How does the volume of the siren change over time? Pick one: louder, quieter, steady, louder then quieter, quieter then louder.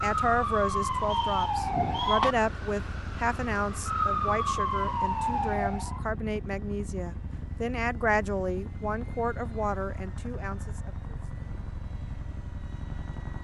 quieter then louder.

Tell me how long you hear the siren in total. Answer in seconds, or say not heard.
6 s.